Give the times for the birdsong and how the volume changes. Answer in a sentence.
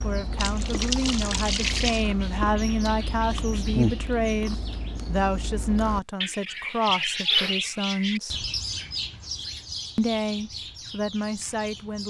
The birdsong can be heard from 0.0 to 12.0 s, getting louder then quieter.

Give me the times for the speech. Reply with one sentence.
The speech can be heard from 0.0 to 8.4 s and from 9.9 to 12.0 s.